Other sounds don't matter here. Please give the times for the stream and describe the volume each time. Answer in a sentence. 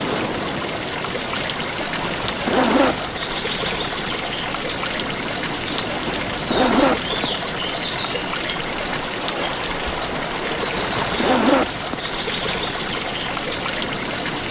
The stream can be heard from 0.0 to 14.4 s, at a steady volume.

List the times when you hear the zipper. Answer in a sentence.
You can hear the zipper from 2.2 to 3.1 s, from 6.0 to 7.2 s and from 10.8 to 11.9 s.